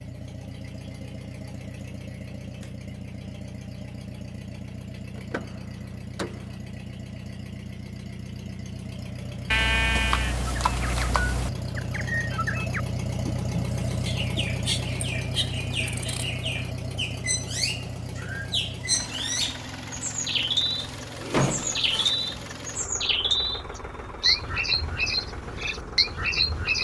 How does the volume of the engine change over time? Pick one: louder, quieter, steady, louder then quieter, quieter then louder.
louder then quieter.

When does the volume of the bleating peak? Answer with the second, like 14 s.
10 s.